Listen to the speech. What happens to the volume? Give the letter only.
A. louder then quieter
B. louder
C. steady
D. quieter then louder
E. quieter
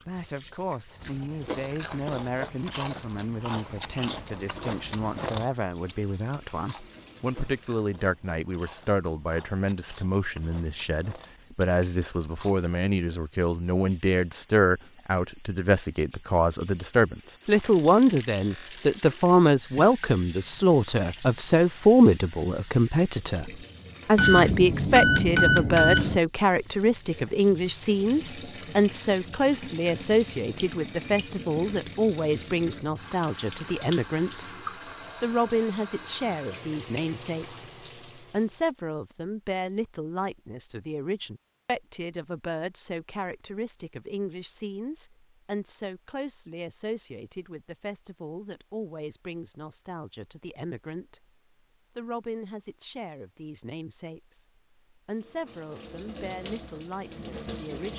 A.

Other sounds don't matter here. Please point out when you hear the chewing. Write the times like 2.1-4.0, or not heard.
1.0-12.7.